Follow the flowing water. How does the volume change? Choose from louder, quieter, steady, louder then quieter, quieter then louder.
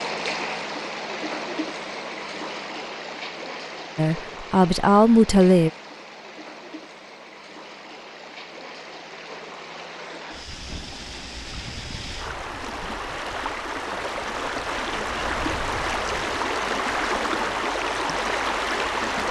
quieter then louder.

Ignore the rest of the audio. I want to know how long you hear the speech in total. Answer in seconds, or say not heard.
2 s.